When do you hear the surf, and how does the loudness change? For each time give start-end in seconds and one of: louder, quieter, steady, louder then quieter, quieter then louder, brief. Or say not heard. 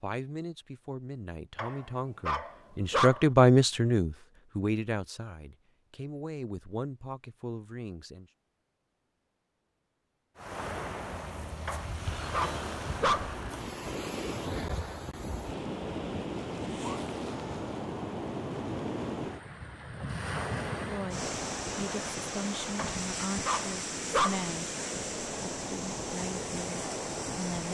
10.3-27.7 steady.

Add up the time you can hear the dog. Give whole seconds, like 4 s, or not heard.
5 s.